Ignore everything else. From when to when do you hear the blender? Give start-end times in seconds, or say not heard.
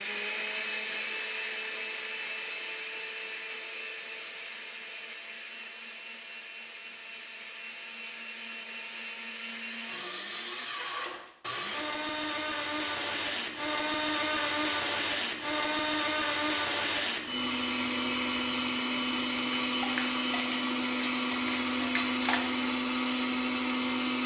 0.0-24.2.